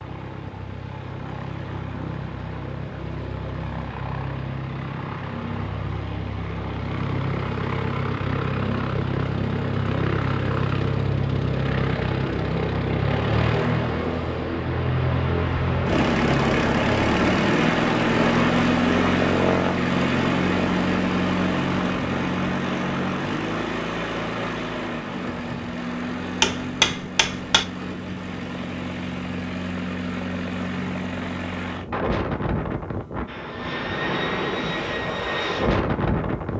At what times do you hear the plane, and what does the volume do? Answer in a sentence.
You can hear the plane from 0.0 to 36.5 s, getting louder then quieter.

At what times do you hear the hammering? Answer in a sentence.
You can hear the hammering from 26.4 to 27.6 s.